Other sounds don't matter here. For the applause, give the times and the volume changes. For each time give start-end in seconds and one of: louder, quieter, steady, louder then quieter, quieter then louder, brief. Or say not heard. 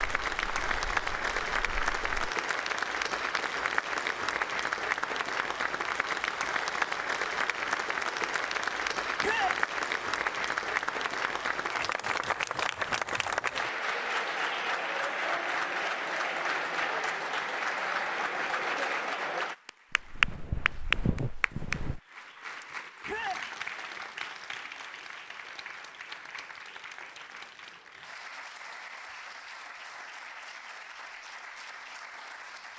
0.0-32.7 quieter.